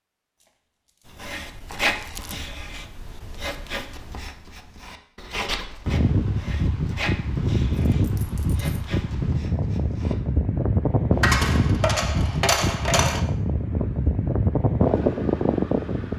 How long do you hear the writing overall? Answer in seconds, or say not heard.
9 s.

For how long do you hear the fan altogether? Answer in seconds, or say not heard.
10 s.